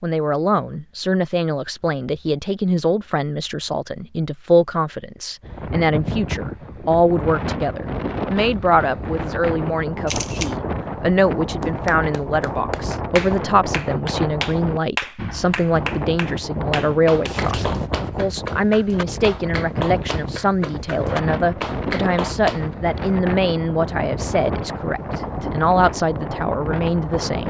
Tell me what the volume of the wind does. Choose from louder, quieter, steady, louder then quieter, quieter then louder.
steady.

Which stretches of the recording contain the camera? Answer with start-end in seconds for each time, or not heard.
10.1-10.6, 17.2-17.9.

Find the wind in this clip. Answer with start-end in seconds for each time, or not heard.
5.4-27.4.